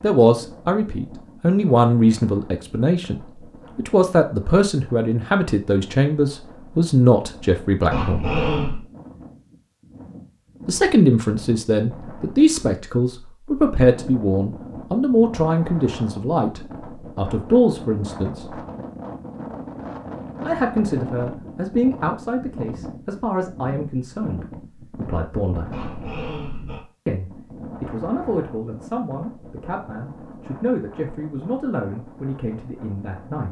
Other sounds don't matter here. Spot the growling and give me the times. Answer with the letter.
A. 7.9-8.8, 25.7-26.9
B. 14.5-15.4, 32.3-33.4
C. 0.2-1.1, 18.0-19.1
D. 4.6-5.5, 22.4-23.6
A.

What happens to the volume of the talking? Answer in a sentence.
The volume of the talking goes down.